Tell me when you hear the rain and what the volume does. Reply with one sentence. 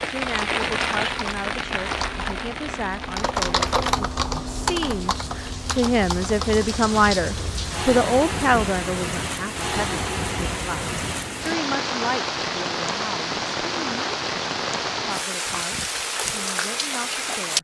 You can hear the rain from 0.0 to 17.5 s, getting quieter then louder.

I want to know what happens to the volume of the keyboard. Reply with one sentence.
The loudness of the keyboard goes up, then down.